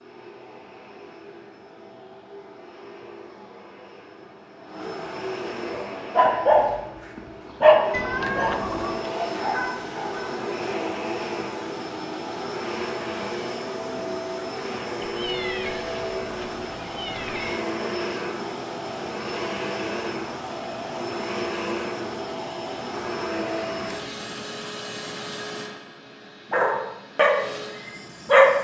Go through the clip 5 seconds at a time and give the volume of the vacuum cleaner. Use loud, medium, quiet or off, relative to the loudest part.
quiet, loud, loud, loud, loud, medium.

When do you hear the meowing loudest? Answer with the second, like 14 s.
8 s.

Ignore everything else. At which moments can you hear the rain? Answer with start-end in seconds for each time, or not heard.
not heard.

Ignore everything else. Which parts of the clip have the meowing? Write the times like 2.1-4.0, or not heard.
7.9-9.1, 15.0-17.6.